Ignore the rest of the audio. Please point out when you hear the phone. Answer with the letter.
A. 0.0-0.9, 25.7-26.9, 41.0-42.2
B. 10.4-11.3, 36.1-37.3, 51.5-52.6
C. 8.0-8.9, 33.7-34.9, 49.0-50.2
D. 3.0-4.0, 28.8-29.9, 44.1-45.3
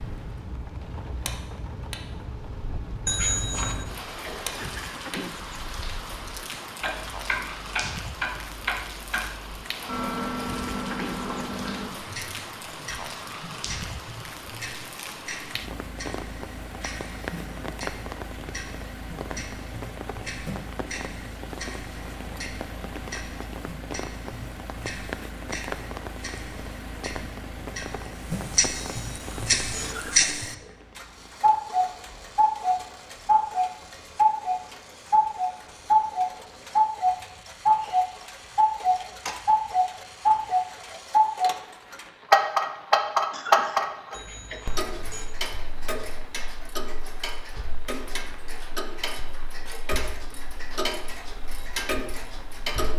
D.